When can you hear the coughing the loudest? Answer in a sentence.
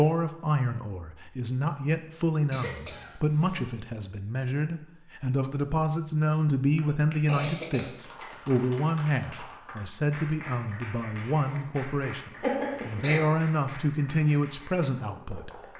The volume of the coughing peaks at 13 seconds.